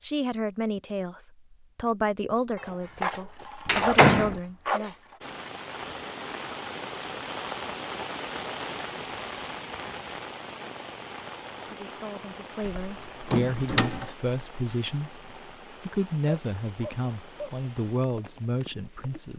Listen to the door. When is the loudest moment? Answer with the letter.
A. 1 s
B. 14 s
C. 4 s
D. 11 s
C.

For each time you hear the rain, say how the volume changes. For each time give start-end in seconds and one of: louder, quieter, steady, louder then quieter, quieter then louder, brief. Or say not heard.
5.2-19.3 quieter.